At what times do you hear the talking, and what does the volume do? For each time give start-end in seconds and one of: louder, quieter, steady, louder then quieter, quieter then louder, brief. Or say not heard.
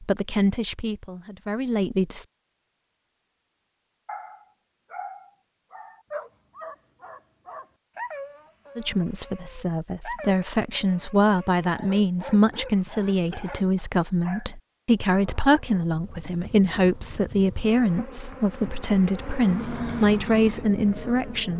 0.0-2.2 brief
8.8-21.5 steady.